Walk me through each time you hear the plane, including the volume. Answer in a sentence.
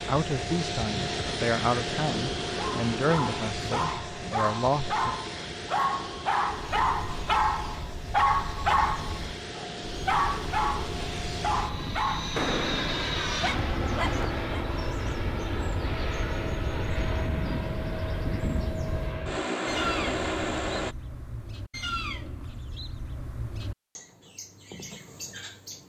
You can hear the plane from 0.0 to 20.9 s, getting quieter then louder.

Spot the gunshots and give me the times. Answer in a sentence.
You can hear the gunshots from 12.3 to 13.3 s.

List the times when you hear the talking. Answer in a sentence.
The talking can be heard from 0.1 to 5.2 s.